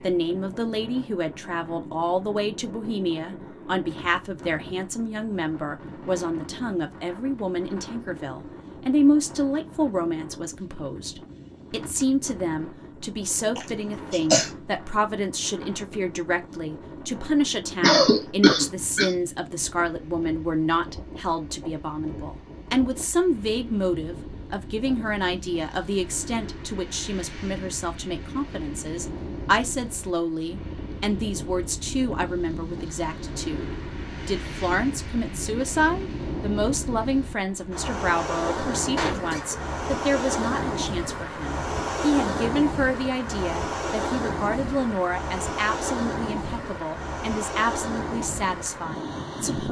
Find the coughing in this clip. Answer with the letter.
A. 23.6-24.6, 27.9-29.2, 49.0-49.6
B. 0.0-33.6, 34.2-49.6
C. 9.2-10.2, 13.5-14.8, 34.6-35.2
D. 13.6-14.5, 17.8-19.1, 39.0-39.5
D.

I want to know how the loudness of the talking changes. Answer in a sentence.
The volume of the talking stays about the same.